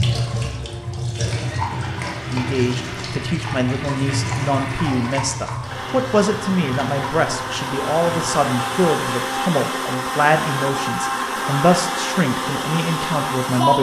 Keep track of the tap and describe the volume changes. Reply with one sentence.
The volume of the tap goes down.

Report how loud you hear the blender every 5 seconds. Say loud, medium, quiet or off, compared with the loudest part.
medium, loud, loud.